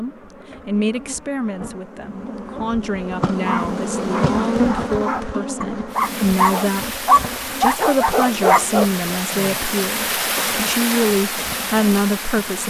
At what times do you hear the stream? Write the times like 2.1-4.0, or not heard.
5.9-12.6.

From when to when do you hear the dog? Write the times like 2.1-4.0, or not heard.
3.5-8.8.